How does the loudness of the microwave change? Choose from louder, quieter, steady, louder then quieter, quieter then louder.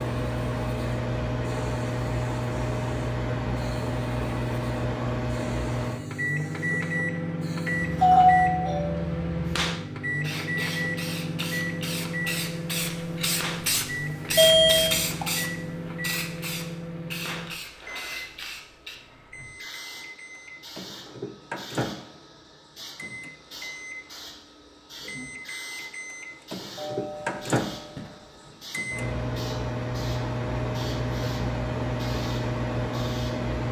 quieter then louder.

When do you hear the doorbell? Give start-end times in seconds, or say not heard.
7.7-9.1, 14.3-15.2, 26.8-28.5.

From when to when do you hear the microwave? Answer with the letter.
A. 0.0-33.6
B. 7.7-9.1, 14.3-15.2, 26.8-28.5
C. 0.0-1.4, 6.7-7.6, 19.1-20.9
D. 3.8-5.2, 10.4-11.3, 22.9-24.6
A.